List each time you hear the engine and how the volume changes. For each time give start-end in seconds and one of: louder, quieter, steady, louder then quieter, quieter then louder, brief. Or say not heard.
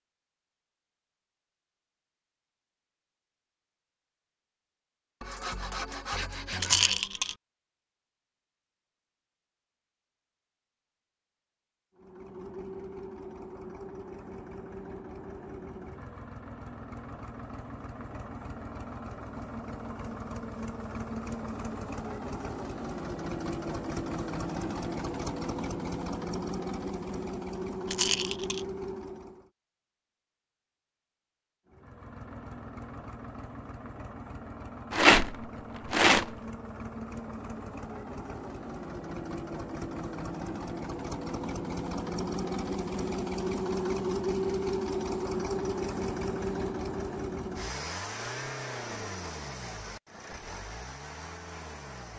11.9-29.5 louder
31.6-52.1 louder then quieter.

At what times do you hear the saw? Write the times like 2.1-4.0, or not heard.
5.2-7.0.